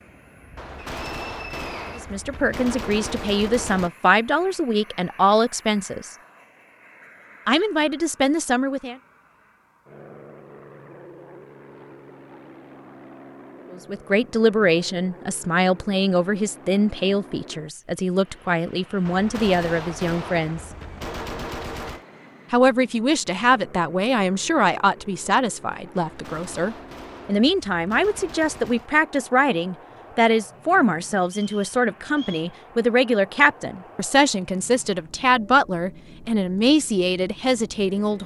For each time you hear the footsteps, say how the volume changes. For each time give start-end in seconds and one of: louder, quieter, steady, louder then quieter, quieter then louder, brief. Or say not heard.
not heard.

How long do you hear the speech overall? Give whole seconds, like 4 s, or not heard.
28 s.